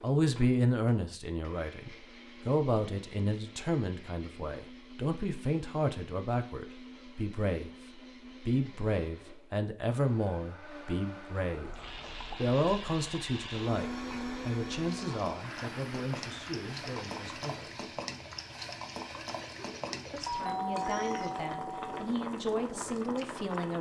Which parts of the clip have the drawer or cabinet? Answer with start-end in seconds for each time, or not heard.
not heard.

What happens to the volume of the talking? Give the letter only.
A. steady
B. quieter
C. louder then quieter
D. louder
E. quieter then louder
B.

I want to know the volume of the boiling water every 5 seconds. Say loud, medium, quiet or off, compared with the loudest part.
off, off, medium, loud, loud.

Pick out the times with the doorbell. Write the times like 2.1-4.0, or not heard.
20.2-21.9.